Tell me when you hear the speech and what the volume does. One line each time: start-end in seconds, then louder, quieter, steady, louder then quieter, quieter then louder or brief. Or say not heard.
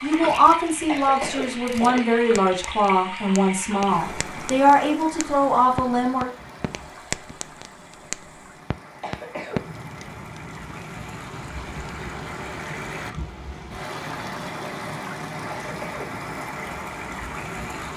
0.0-6.2 steady.